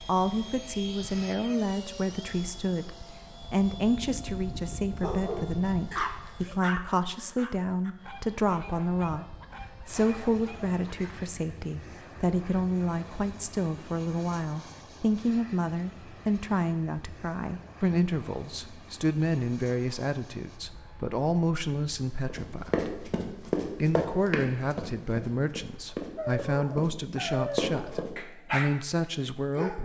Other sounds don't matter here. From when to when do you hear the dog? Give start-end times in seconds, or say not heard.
5.0-11.1, 26.1-29.8.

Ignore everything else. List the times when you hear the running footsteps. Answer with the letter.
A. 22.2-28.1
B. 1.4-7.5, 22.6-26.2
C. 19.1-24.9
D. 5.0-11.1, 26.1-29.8
A.